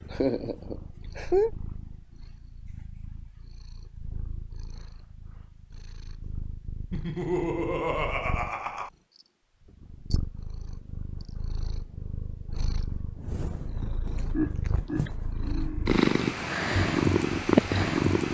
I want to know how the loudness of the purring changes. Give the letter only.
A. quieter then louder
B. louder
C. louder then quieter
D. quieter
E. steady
B.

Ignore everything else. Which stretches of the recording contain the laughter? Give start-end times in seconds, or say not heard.
0.1-1.5, 6.9-8.9, 14.3-16.0.